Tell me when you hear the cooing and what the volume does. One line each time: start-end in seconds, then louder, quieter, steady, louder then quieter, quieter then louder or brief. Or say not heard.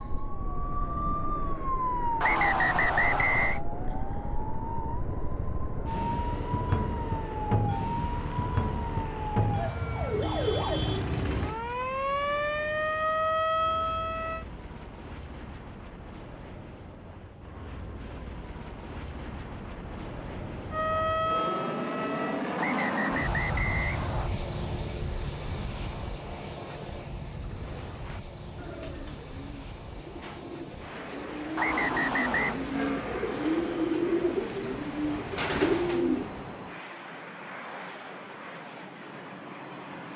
27.2-36.8 louder.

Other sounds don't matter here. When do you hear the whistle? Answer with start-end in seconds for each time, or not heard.
2.2-3.6, 22.6-24.3, 31.6-32.5.